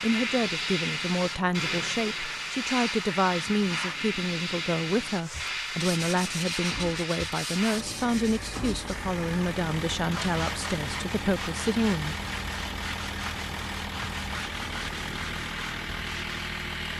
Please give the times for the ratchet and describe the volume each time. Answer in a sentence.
You can't hear the ratchet here.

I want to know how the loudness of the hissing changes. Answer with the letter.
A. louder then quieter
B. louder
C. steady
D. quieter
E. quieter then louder
D.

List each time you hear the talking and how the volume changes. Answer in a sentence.
The talking can be heard from 0.0 to 12.2 s, at a steady volume.